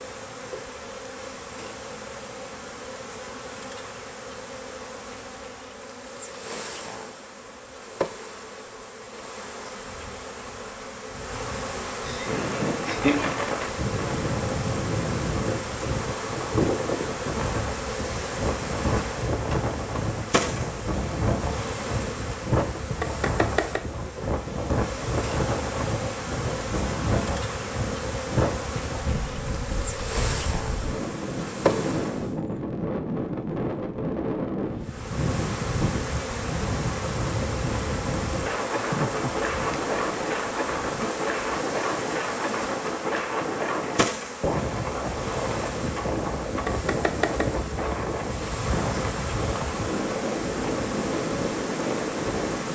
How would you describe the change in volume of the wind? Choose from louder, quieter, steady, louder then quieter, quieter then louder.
steady.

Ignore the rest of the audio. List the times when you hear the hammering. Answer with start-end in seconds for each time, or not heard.
not heard.